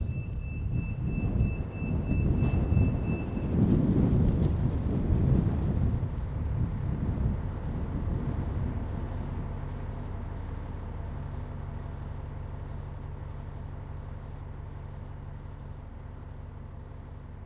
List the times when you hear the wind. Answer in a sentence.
You can hear the wind from 0.0 to 9.5 s.